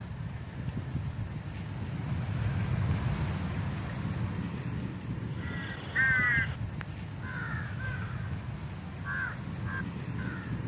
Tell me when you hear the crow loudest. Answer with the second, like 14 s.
6 s.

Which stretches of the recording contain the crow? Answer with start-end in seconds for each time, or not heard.
5.4-10.6.